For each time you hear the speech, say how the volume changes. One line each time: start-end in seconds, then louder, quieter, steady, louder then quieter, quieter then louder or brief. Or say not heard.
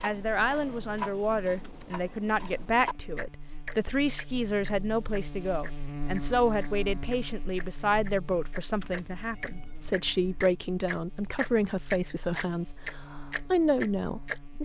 0.0-14.5 steady.